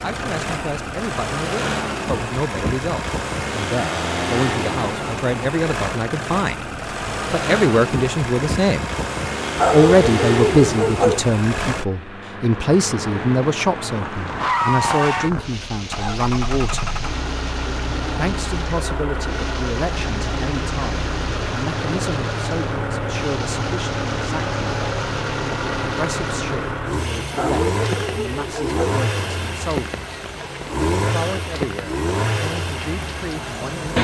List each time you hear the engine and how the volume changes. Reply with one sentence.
You can hear the engine from 0.0 to 33.9 s, at a steady volume.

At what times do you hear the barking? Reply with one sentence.
The barking can be heard from 9.6 to 11.2 s and from 27.4 to 28.8 s.